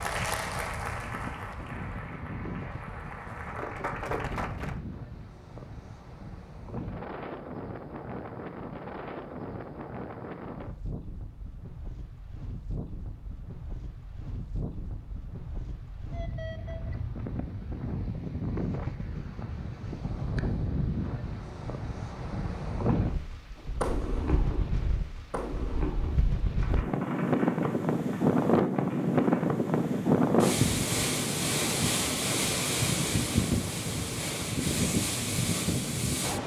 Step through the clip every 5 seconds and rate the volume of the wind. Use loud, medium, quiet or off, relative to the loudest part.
quiet, quiet, quiet, medium, medium, loud, loud, loud.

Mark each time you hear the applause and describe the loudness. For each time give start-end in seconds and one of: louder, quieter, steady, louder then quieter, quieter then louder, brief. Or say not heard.
0.0-4.8 quieter then louder.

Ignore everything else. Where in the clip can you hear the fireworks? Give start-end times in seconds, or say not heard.
23.6-29.5.